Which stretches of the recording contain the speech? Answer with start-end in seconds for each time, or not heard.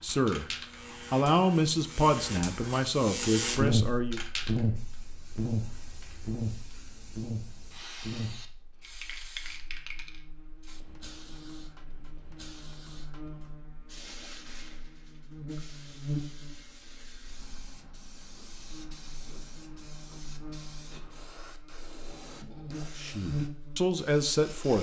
0.0-4.2, 22.9-24.7.